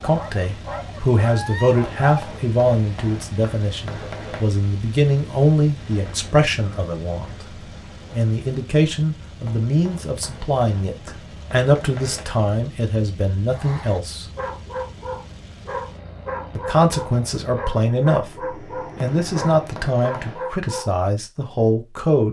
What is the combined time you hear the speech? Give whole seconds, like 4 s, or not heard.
20 s.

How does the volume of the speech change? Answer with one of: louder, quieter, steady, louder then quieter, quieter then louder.
steady.